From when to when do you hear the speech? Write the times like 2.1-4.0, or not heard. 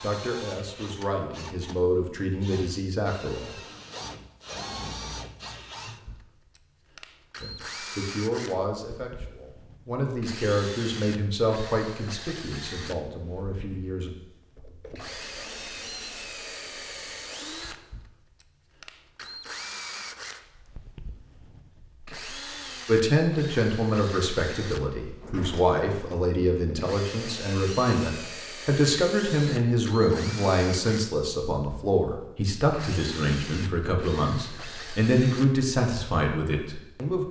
0.0-3.5, 7.4-14.1, 22.9-37.2.